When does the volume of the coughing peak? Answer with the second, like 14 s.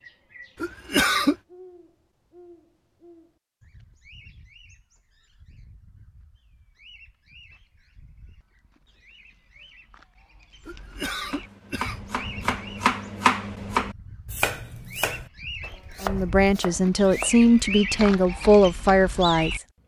1 s.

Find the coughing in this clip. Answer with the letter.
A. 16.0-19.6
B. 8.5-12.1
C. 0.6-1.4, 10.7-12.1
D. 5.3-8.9
C.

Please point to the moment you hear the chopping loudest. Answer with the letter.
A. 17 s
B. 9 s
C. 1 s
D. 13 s
D.